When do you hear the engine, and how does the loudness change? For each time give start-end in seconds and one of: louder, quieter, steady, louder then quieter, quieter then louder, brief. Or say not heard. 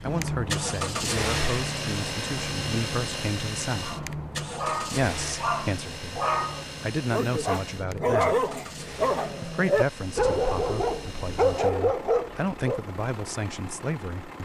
0.0-14.4 quieter.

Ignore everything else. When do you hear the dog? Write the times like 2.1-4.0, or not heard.
3.8-12.8.